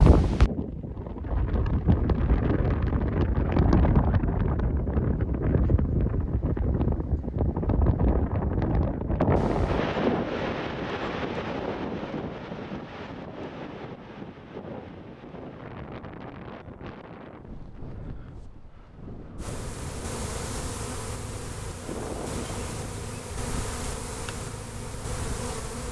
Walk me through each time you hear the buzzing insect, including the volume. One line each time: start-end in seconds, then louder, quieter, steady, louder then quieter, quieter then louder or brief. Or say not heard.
19.4-25.8 steady.